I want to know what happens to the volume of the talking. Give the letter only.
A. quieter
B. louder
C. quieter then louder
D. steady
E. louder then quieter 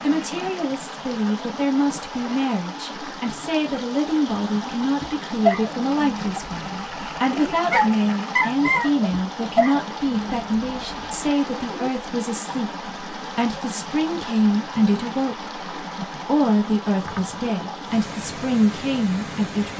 D.